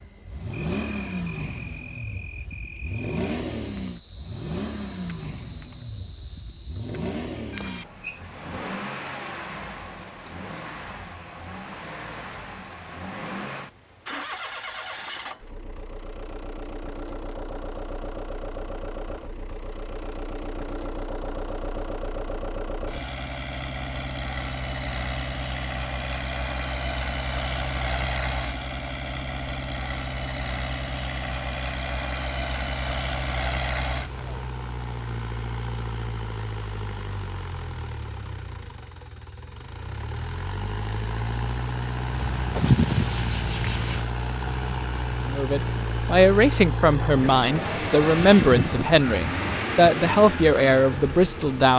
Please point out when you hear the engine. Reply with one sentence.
The engine can be heard from 0.0 to 51.7 s.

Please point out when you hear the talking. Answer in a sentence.
The talking can be heard from 45.2 to 51.7 s.